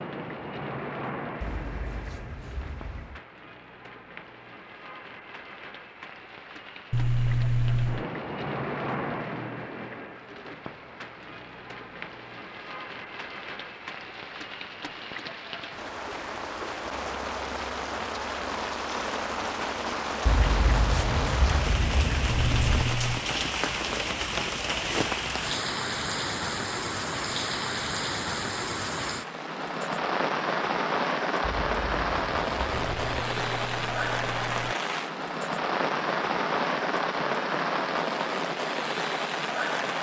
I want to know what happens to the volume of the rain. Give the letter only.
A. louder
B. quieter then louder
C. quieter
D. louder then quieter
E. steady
A.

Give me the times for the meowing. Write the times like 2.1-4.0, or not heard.
6.9-8.1, 22.2-23.2, 32.7-34.8.